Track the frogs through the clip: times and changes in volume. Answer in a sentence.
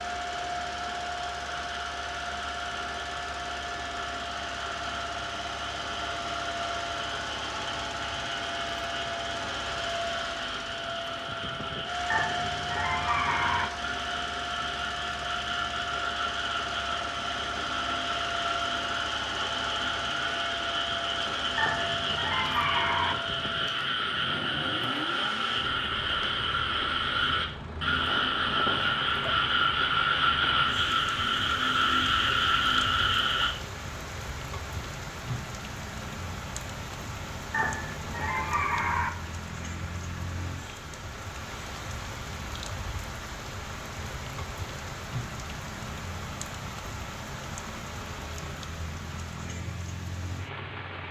You can hear the frogs from 0.0 to 33.5 s, getting louder.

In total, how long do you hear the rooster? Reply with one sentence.
You can hear the rooster for 5 seconds altogether.